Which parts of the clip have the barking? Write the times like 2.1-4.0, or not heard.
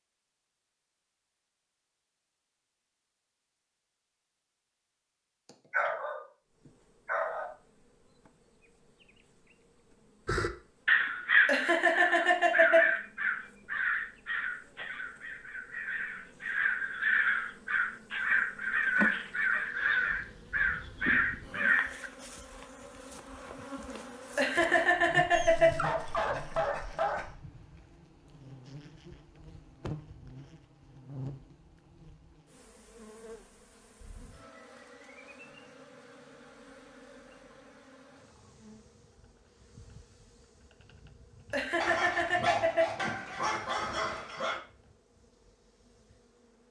5.7-6.2, 7.0-7.5, 25.3-27.4, 41.8-44.6.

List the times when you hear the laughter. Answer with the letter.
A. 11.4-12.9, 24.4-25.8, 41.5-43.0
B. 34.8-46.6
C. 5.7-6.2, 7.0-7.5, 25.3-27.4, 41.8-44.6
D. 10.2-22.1
A.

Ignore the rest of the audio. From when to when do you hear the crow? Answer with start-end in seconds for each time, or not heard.
10.2-22.1.